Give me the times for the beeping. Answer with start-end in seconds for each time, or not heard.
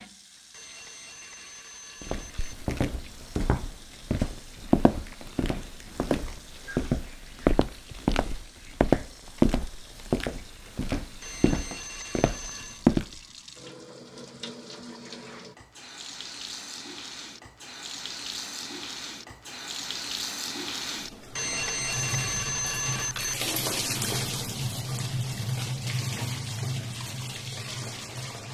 0.5-2.5, 11.2-12.8, 21.4-23.4.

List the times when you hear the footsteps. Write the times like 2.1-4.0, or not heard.
2.0-13.2.